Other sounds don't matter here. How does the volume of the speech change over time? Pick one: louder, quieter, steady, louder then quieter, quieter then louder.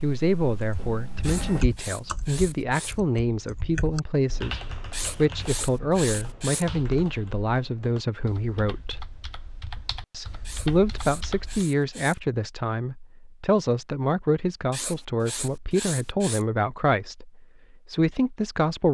steady.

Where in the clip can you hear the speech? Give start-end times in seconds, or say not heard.
0.0-9.1, 10.1-18.8.